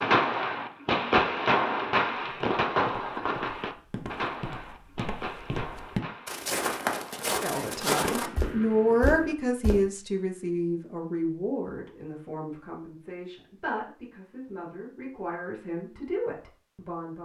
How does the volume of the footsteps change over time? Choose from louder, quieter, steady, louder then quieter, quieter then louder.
louder.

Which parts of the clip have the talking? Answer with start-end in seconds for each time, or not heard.
7.2-17.1.